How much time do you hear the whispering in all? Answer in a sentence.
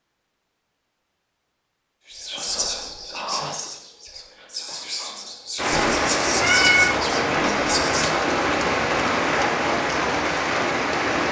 The whispering can be heard for 6 seconds in total.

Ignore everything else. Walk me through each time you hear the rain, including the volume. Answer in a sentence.
You can hear the rain from 5.5 to 11.2 s, at a steady volume.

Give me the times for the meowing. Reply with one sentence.
You can hear the meowing from 5.7 to 7.2 s.